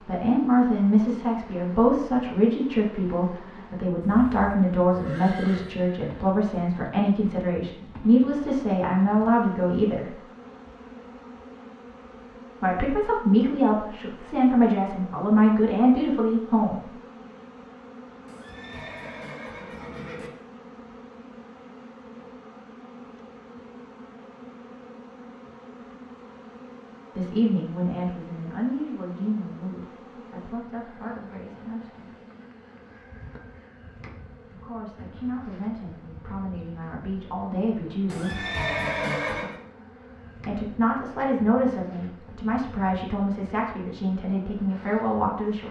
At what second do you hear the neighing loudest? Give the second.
39 s.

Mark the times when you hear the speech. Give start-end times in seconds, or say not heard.
0.1-10.2, 12.6-16.9, 27.1-32.1, 34.4-38.5, 40.5-45.6.